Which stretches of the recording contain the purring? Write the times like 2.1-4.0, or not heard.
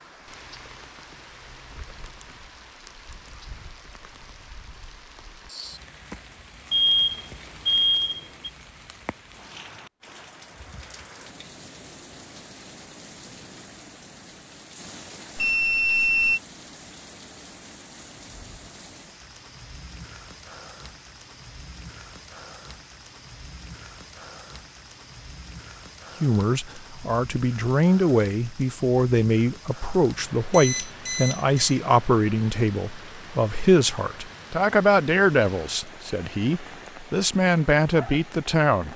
not heard.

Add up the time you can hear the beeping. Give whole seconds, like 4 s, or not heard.
4 s.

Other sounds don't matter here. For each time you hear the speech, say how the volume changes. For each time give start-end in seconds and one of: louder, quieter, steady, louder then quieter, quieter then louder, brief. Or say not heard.
26.2-38.9 steady.